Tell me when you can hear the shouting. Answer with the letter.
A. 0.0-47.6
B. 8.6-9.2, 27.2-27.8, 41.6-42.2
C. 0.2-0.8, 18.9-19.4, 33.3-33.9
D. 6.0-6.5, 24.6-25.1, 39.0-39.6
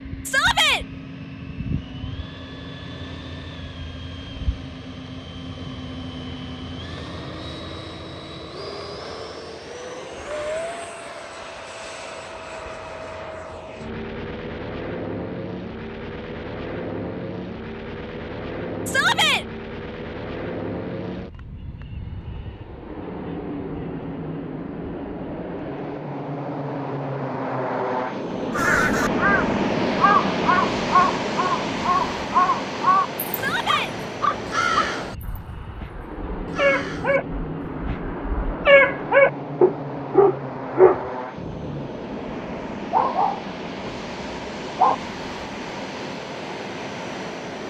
C.